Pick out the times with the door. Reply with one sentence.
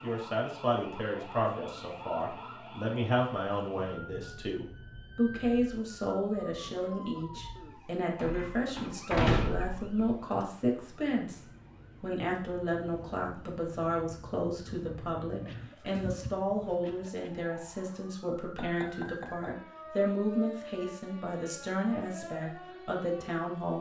The door can be heard from 8.2 to 9.9 s.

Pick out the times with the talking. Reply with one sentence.
You can hear the talking from 0.0 to 11.4 s and from 12.0 to 23.7 s.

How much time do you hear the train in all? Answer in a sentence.
You can't hear the train here.